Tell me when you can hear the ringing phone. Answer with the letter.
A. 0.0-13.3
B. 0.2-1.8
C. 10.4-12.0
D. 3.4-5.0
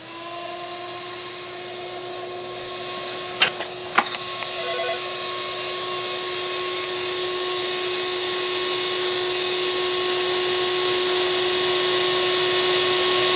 D.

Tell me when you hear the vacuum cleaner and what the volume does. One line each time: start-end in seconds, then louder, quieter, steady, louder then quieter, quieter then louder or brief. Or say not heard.
0.0-13.3 louder.